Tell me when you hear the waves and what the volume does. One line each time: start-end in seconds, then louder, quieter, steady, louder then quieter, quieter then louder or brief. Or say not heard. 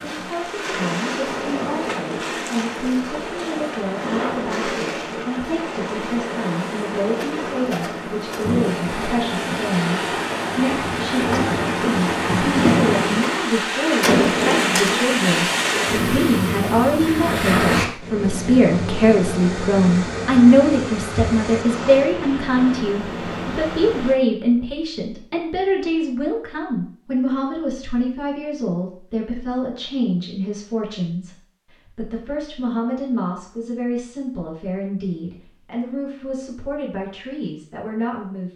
0.0-24.2 louder then quieter.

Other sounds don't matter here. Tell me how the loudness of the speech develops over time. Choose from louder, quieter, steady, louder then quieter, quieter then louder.
louder then quieter.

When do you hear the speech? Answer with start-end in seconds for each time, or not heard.
0.0-38.5.